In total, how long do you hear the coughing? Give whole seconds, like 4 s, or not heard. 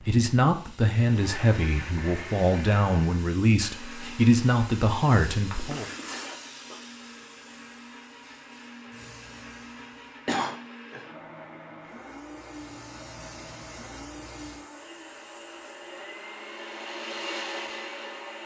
2 s.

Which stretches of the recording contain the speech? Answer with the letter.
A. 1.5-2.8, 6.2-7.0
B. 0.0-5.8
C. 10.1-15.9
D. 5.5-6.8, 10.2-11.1
B.